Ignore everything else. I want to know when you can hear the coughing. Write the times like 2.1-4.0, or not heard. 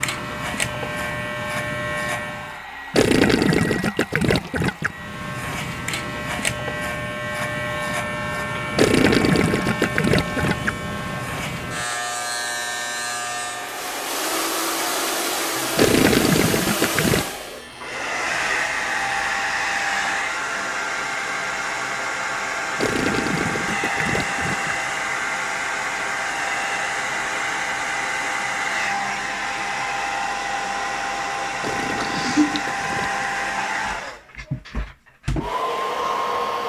31.9-32.6.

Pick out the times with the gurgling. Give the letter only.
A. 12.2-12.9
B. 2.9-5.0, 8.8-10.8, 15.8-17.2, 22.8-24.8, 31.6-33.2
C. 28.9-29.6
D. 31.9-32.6
B.